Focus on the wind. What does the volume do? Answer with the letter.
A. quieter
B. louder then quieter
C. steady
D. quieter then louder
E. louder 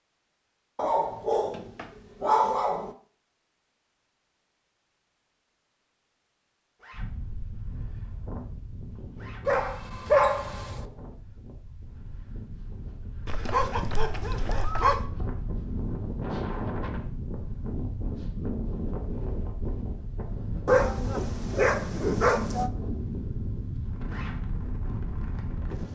E.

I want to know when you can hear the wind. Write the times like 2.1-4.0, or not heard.
6.9-25.8.